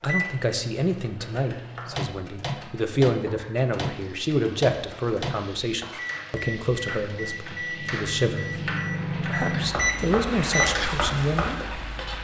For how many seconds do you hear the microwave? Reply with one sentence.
The microwave can be heard for 12 seconds in total.